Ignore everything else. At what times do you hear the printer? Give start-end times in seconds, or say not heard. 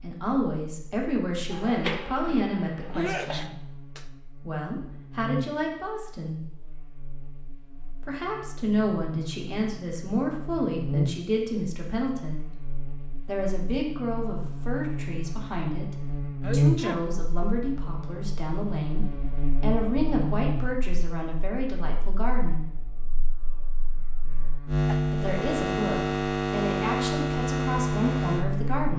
1.5-3.5.